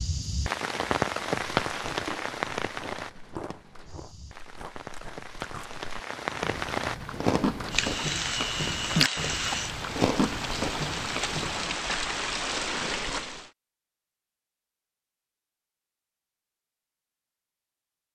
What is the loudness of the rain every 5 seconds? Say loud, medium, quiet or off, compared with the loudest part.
loud, loud, loud, off.